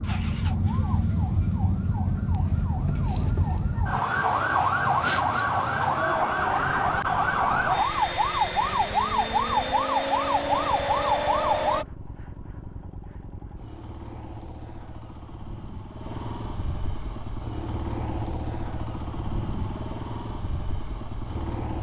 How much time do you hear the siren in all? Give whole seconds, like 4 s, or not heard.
12 s.